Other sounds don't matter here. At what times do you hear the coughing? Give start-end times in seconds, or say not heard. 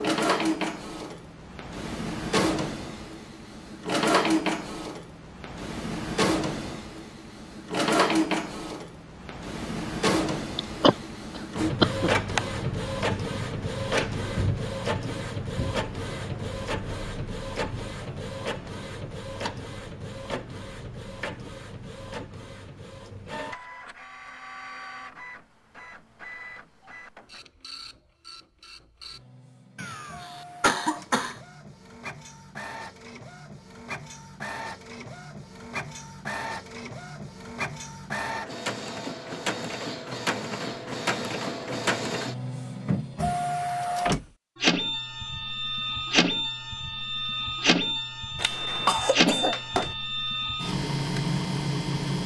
10.6-12.1, 29.8-31.4, 48.4-50.0.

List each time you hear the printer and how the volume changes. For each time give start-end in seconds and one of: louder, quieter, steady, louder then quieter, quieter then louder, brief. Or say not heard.
0.0-52.2 quieter then louder.